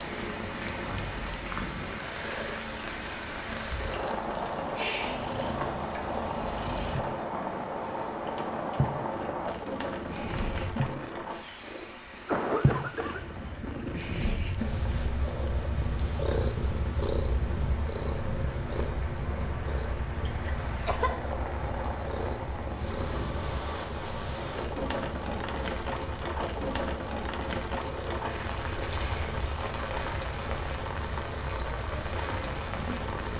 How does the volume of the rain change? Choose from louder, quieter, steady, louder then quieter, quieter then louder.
quieter then louder.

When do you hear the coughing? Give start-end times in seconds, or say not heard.
12.2-13.3, 20.2-21.1.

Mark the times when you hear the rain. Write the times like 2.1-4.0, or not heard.
0.0-33.3.